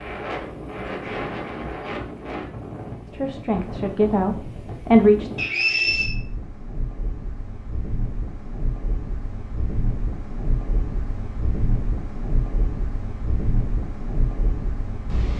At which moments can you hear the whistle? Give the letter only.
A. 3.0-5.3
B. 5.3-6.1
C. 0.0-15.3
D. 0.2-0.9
B.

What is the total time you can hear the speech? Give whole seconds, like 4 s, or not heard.
2 s.